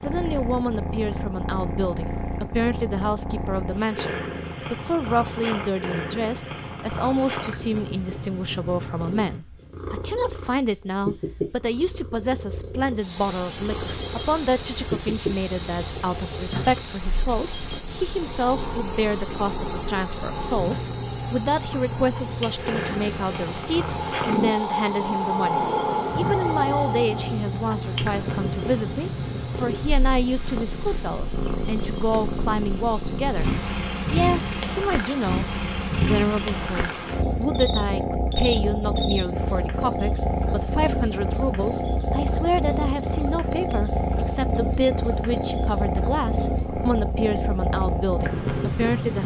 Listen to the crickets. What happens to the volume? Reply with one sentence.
The loudness of the crickets goes down.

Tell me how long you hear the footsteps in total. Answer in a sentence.
The footsteps can't be heard in this clip.